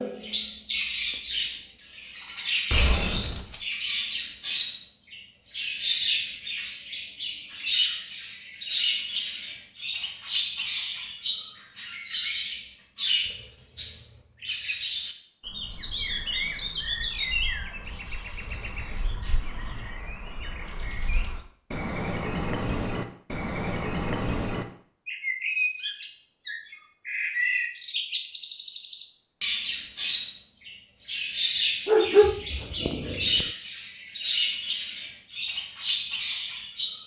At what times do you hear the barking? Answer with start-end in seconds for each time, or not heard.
31.9-33.5.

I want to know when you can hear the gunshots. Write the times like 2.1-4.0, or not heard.
2.7-3.6.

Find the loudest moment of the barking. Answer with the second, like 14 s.
32 s.